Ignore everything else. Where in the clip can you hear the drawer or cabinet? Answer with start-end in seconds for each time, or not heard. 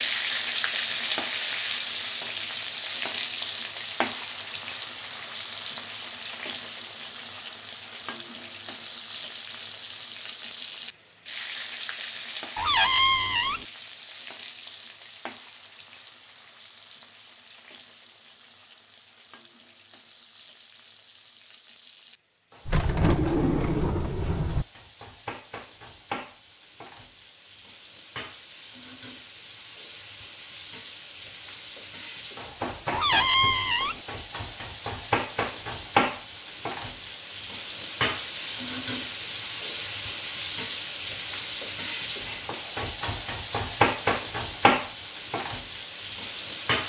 12.6-13.7, 22.6-24.6, 32.9-34.0.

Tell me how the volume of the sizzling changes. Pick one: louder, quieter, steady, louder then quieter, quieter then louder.
quieter then louder.